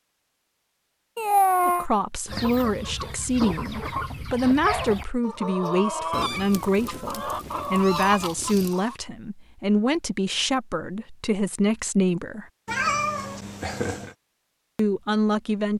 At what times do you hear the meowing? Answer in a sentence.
You can hear the meowing from 1.1 to 1.9 s, from 6.1 to 8.7 s and from 12.7 to 14.2 s.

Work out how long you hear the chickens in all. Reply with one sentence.
The chickens can be heard for 7 seconds in total.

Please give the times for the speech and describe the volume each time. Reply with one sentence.
You can hear the speech from 1.6 to 12.4 s, at a steady volume; and briefly from 14.8 to 15.7 s.